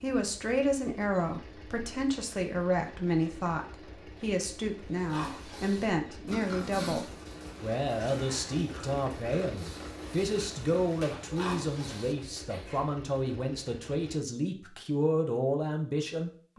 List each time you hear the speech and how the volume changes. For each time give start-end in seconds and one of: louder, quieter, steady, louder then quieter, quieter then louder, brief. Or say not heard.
0.0-16.5 steady.